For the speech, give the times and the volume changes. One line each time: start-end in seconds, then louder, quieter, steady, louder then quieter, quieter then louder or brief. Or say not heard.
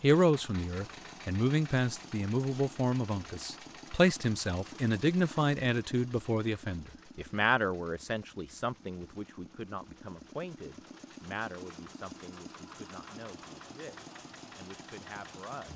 0.0-15.7 quieter.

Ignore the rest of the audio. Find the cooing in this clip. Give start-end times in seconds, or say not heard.
not heard.